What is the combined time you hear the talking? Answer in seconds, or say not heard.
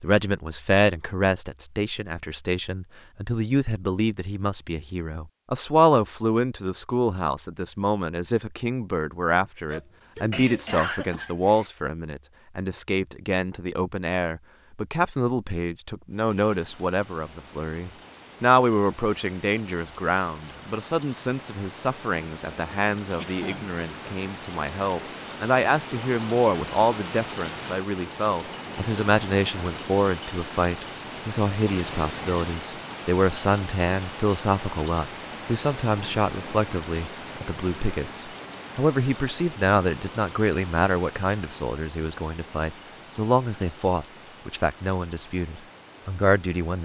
47 s.